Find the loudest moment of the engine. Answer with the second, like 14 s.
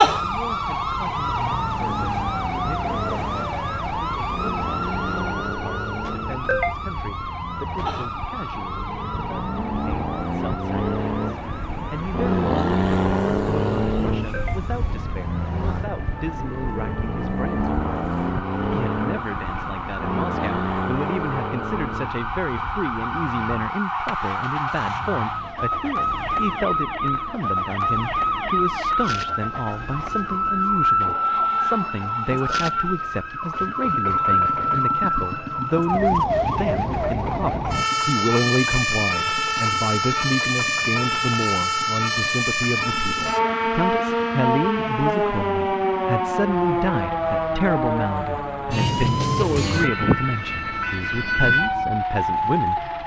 13 s.